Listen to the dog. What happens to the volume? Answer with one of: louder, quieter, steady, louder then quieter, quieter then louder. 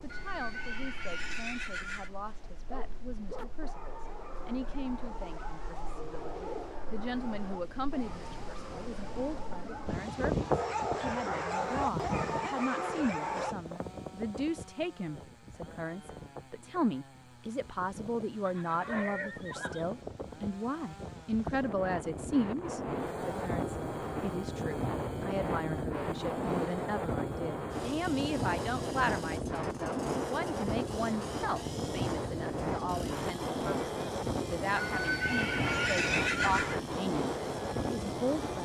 louder.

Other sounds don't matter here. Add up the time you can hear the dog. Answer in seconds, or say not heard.
11 s.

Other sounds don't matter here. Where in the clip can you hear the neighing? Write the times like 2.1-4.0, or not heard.
0.1-2.1, 18.4-19.9, 34.8-36.8.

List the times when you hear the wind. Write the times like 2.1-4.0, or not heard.
0.0-38.6.